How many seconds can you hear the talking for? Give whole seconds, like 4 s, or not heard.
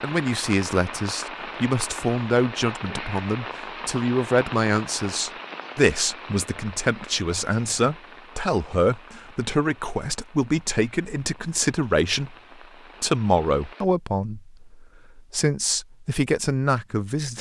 17 s.